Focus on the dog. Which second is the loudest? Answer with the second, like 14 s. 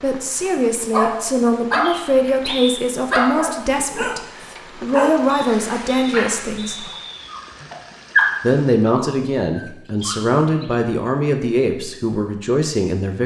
8 s.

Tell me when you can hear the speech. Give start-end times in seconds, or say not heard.
0.0-6.8, 8.4-13.2.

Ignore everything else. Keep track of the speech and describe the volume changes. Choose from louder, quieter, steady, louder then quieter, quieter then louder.
steady.